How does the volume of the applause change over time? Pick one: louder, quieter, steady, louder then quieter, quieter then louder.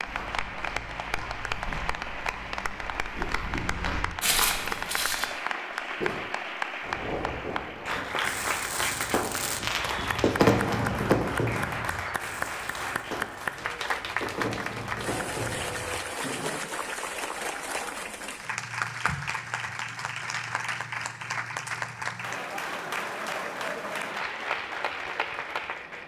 steady.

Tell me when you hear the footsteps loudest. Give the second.
4 s.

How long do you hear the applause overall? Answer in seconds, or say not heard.
26 s.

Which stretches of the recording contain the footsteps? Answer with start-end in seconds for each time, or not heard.
0.0-6.2.